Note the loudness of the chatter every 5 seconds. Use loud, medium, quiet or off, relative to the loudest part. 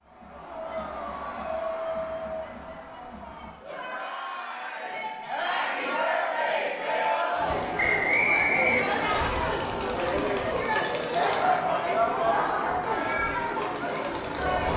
medium, loud, loud.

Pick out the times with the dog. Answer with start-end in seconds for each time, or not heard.
11.3-13.2.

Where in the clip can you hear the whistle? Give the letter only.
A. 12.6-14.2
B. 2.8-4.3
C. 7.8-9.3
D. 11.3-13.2
C.